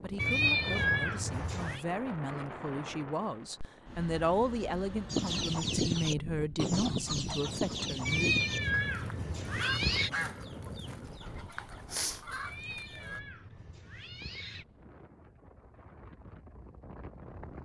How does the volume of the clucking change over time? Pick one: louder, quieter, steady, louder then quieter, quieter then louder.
quieter.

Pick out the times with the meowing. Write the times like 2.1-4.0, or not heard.
0.1-1.9, 8.1-10.1, 12.4-14.7.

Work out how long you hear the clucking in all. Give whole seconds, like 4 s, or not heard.
8 s.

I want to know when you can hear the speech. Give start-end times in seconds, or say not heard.
0.0-8.3.